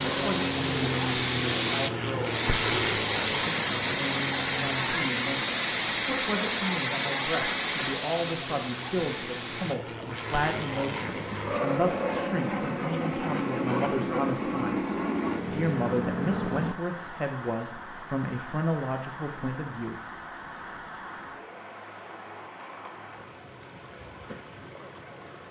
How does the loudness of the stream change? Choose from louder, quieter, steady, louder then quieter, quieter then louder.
quieter.